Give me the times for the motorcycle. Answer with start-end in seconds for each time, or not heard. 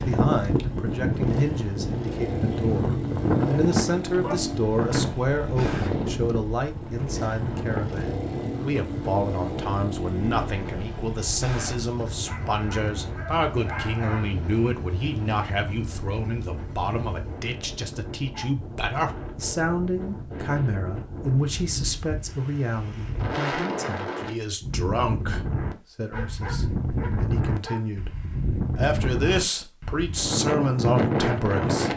0.0-17.4.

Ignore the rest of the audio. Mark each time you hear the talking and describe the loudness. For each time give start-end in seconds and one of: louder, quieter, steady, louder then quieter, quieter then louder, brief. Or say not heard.
0.0-31.9 steady.